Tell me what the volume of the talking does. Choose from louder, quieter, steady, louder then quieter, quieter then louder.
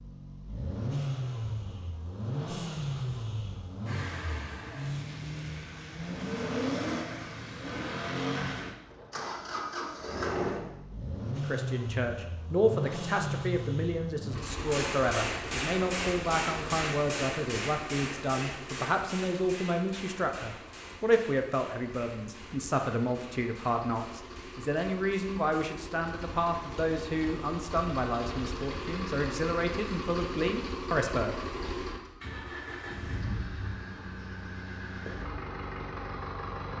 steady.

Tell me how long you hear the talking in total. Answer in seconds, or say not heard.
20 s.